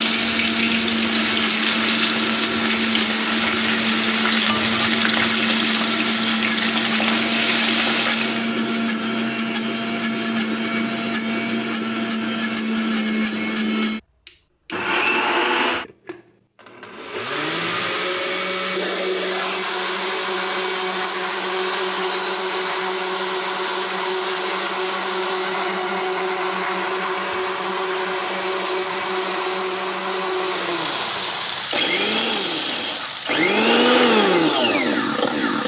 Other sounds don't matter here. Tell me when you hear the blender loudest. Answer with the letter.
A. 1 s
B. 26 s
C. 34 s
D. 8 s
C.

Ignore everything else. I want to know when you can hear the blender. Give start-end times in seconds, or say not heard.
0.0-35.6.